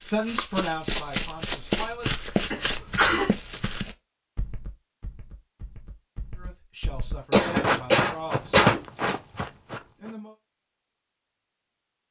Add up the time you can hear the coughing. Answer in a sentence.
The coughing can be heard for 3 seconds in total.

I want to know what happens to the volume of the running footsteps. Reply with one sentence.
The volume of the running footsteps goes down, then up.